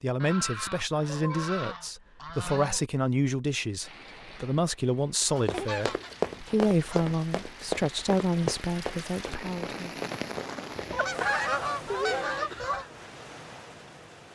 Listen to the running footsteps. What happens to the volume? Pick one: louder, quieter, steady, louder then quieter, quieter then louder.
quieter.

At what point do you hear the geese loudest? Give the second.
11 s.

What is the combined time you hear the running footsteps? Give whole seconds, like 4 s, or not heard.
6 s.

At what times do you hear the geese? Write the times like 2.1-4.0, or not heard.
0.1-2.8, 5.2-7.2, 10.9-12.8.